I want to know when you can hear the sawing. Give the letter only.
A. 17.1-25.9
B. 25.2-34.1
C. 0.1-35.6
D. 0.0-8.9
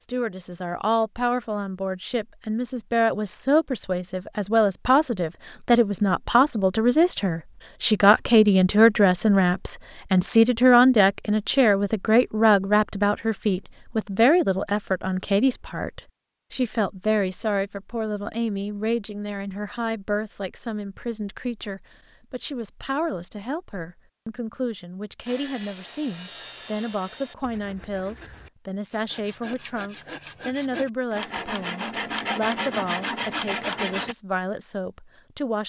B.